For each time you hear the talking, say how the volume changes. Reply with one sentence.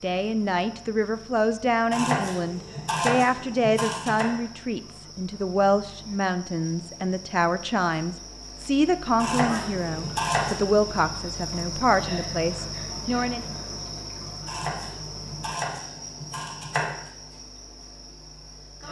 The talking can be heard from 0.0 to 13.4 s, at a steady volume.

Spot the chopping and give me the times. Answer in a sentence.
The chopping can be heard from 1.9 to 4.3 s, from 9.2 to 10.9 s and from 14.4 to 17.0 s.